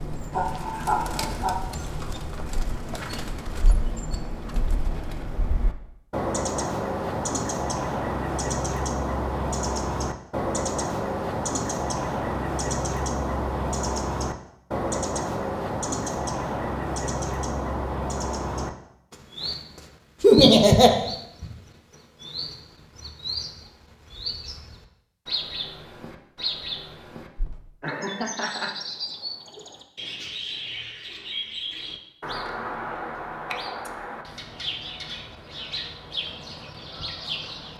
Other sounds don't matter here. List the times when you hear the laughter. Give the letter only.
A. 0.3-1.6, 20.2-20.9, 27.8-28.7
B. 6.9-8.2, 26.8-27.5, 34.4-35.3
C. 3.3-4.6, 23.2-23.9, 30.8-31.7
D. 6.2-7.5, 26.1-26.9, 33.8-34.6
A.